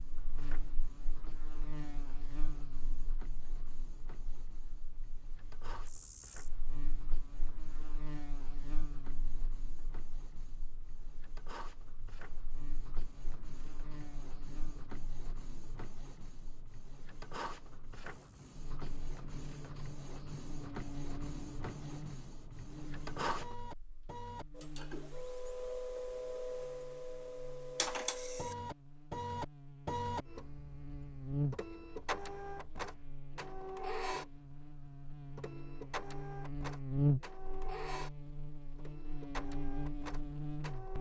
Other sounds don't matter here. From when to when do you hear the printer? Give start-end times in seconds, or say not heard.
0.0-40.9.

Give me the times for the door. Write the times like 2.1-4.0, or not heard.
not heard.